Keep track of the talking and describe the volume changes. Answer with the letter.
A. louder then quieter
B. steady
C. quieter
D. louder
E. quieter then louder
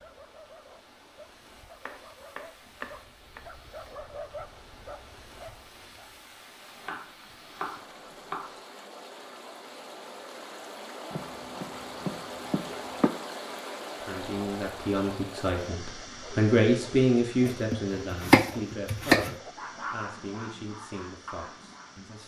A.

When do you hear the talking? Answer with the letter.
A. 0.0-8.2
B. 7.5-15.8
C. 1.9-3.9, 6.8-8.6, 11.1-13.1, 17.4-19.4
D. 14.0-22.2
D.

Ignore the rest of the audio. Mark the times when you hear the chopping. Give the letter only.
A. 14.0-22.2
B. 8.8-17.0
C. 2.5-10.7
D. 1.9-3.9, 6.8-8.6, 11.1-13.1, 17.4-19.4
D.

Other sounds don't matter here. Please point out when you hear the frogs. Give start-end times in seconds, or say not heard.
not heard.